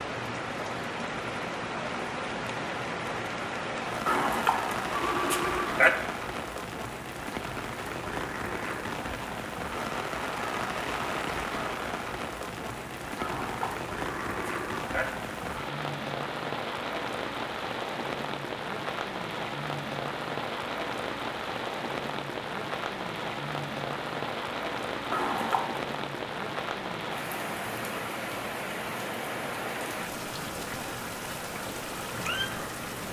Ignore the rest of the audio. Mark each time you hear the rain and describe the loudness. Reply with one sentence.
The rain can be heard from 0.0 to 33.0 s, at a steady volume.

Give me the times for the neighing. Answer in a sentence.
You can hear the neighing from 4.0 to 6.0 s, from 13.2 to 15.1 s and from 25.1 to 25.8 s.